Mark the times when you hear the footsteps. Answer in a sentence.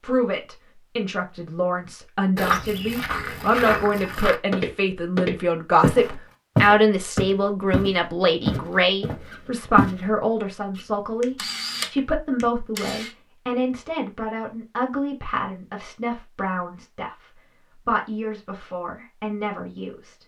The footsteps can be heard from 2.4 to 9.9 s.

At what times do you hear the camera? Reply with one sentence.
You can hear the camera from 10.8 to 13.2 s.